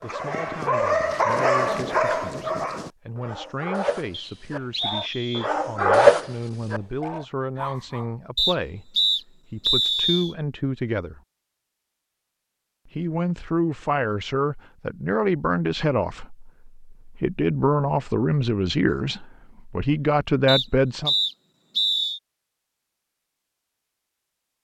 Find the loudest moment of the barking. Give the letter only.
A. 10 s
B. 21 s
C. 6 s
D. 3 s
C.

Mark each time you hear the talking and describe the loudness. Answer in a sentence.
You can hear the talking from 0.0 to 11.2 s, getting louder; and from 12.8 to 21.1 s, at a steady volume.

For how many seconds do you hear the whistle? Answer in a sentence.
You can hear the whistle for 5 seconds altogether.